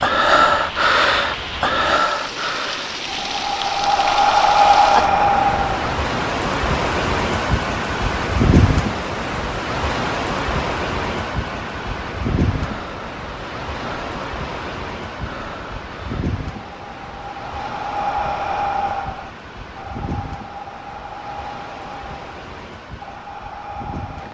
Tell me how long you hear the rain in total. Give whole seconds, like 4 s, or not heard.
24 s.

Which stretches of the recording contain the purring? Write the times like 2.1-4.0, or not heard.
not heard.